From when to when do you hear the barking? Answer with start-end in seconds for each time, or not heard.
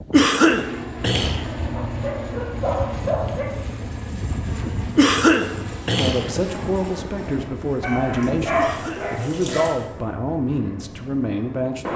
1.8-3.8, 7.8-9.8.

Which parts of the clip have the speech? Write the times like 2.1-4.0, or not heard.
6.0-11.9.